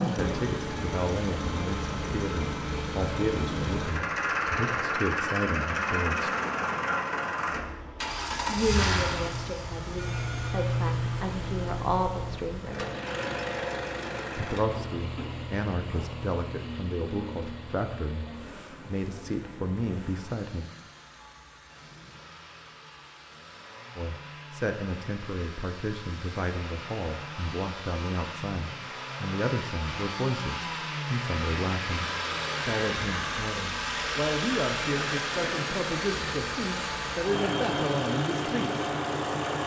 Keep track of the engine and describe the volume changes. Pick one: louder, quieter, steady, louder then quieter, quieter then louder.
quieter then louder.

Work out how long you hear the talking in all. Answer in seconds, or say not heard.
32 s.